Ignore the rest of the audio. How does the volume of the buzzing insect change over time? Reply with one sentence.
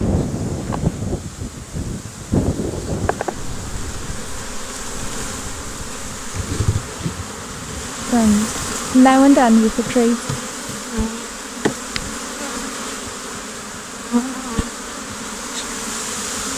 The volume of the buzzing insect goes up.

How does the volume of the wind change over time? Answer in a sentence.
The loudness of the wind goes down.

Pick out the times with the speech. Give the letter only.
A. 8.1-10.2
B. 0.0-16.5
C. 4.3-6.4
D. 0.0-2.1
A.